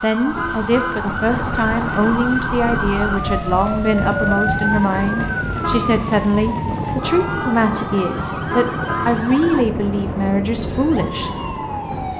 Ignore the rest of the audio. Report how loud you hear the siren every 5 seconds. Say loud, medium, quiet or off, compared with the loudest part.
loud, loud, medium.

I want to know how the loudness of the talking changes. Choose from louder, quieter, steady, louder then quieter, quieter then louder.
steady.